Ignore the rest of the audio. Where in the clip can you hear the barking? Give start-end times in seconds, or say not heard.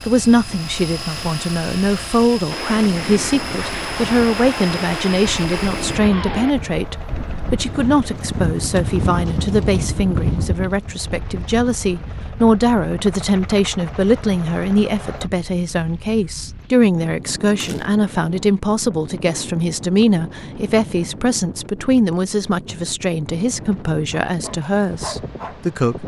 24.1-26.0.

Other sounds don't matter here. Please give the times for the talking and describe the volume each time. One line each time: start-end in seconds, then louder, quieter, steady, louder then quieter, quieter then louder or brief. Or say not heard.
0.1-26.0 steady.